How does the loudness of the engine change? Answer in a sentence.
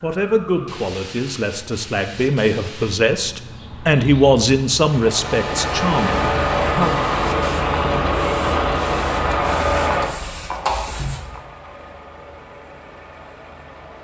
The loudness of the engine goes down.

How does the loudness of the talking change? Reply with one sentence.
The loudness of the talking goes up, then down.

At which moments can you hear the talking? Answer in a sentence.
You can hear the talking from 0.0 to 7.0 s.